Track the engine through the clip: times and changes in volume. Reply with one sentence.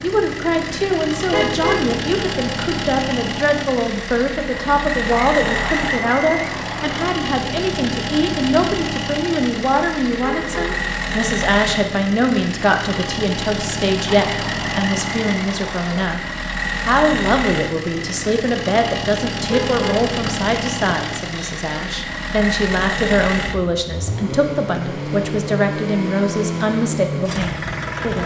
The engine can be heard from 0.0 to 28.2 s, at a steady volume.